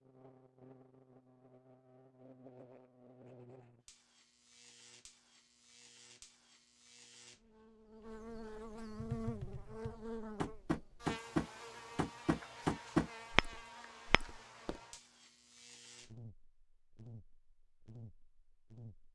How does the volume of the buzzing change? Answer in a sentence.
The volume of the buzzing goes up, then down.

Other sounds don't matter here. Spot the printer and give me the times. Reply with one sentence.
The printer can't be heard in this clip.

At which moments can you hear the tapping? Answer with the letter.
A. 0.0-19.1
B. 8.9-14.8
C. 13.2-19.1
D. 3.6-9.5
B.